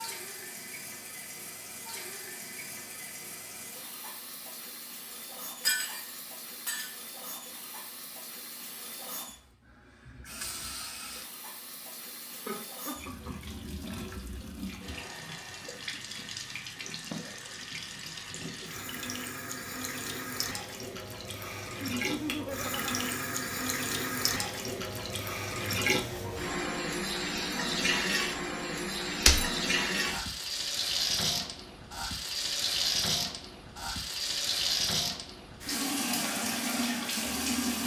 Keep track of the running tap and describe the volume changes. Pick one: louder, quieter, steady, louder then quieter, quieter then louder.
louder.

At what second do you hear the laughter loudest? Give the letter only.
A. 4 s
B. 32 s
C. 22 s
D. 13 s
C.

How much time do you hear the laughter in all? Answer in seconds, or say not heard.
2 s.